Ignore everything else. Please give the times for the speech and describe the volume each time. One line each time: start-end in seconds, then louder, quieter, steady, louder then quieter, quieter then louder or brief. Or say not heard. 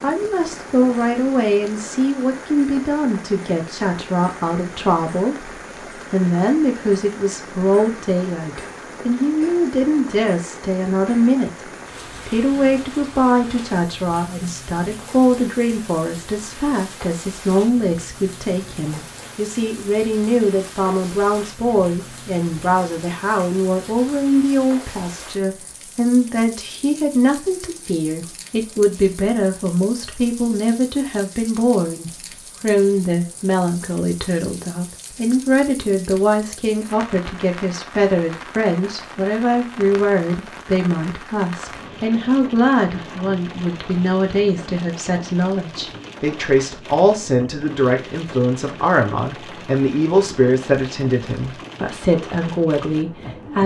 0.0-53.6 steady.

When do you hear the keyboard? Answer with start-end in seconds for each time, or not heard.
not heard.